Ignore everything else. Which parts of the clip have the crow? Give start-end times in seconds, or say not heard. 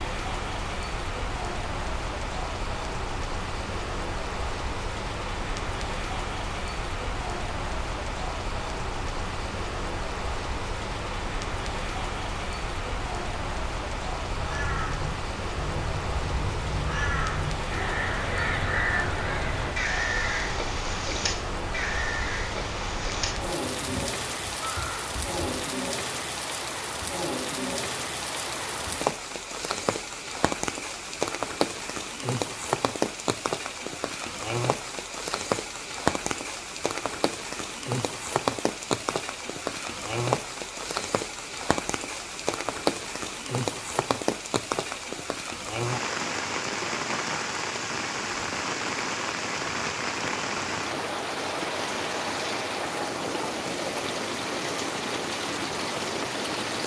14.2-25.5.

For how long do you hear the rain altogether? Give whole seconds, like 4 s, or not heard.
57 s.